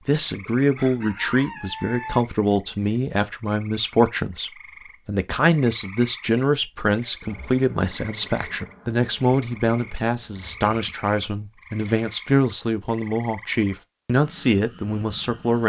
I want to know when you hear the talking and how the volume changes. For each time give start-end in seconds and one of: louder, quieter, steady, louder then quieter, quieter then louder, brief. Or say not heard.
0.1-15.6 steady.